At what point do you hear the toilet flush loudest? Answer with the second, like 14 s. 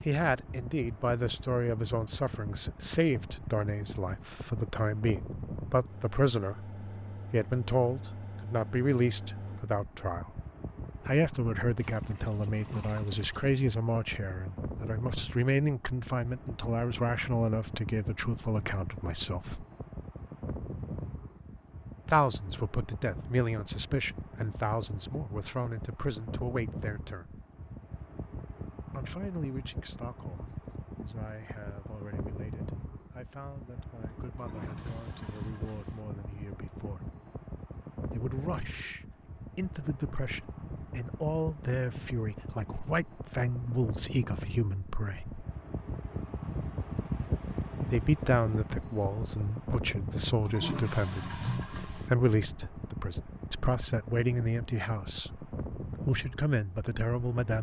51 s.